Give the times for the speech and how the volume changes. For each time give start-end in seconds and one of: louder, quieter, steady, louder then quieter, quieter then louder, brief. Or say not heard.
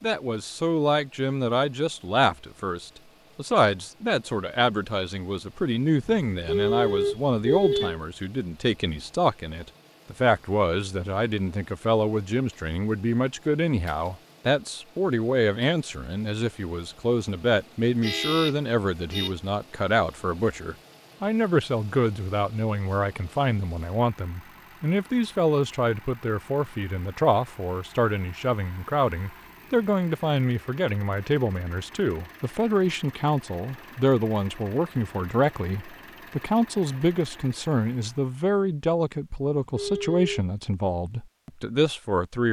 0.0-42.4 steady.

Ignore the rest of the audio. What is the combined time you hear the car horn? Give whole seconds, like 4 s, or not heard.
4 s.